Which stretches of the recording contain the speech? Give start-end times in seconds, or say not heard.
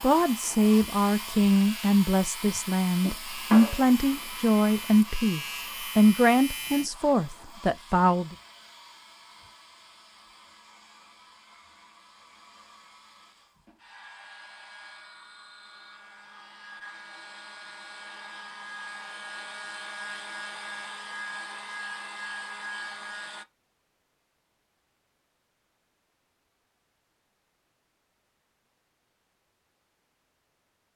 0.0-8.3.